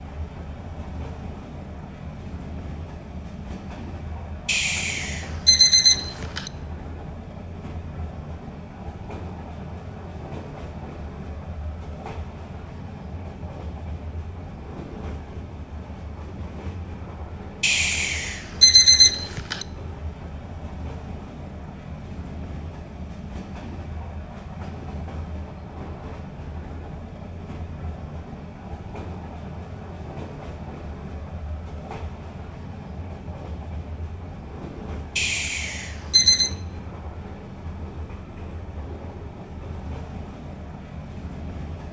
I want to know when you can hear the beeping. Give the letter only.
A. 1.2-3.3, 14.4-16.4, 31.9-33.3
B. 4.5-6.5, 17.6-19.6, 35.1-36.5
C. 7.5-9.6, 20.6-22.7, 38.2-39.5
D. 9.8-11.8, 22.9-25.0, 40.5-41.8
B.